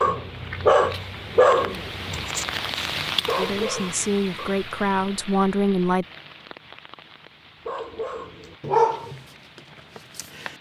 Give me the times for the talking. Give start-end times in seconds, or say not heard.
3.4-6.0.